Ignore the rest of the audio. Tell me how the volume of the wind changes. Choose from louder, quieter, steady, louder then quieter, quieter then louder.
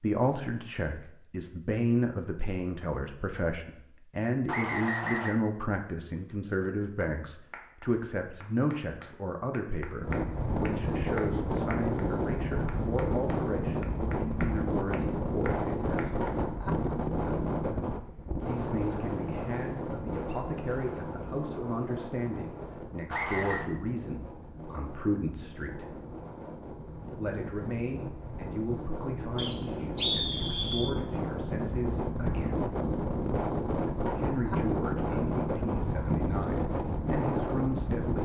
quieter then louder.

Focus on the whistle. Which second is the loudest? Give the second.
30 s.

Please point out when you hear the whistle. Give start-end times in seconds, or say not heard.
4.5-5.3, 23.1-23.7, 29.4-30.9.